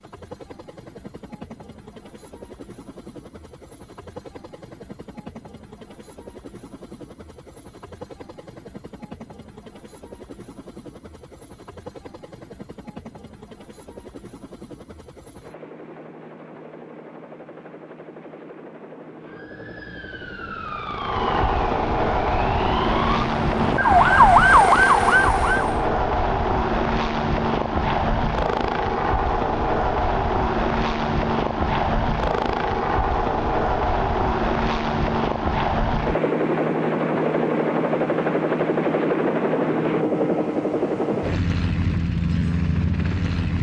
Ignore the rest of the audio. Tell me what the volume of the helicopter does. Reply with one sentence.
The volume of the helicopter goes up.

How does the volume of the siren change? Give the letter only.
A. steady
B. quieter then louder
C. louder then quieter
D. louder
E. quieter
D.